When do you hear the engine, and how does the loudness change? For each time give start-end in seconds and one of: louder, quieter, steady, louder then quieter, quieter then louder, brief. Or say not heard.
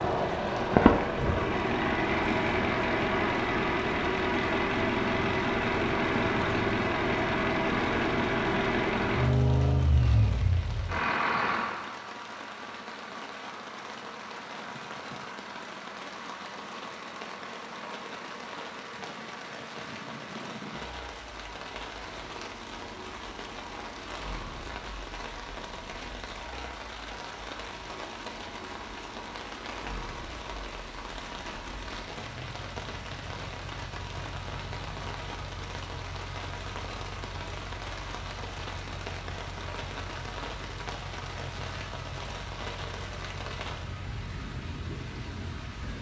0.0-45.9 quieter.